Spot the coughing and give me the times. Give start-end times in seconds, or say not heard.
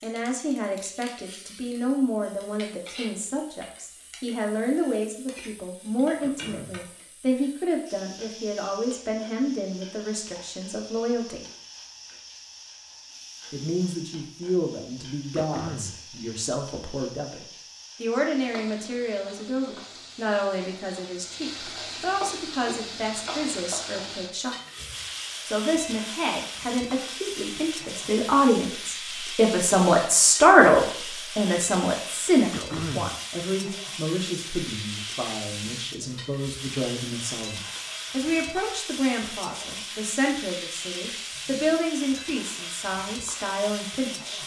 6.2-6.9, 15.3-16.1, 32.5-33.2.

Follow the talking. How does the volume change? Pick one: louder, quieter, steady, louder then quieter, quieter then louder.
louder then quieter.